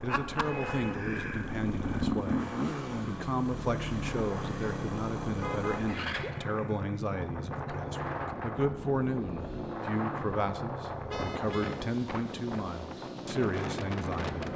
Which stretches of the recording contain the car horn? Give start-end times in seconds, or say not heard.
0.3-1.1, 5.4-6.3, 11.1-11.8.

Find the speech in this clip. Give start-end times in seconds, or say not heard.
0.0-14.3.